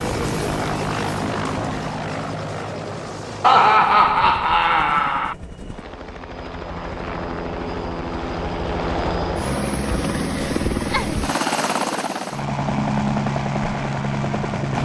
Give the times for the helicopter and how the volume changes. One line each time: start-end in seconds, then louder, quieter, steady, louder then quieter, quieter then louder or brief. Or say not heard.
0.0-14.7 quieter then louder.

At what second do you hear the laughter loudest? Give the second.
4 s.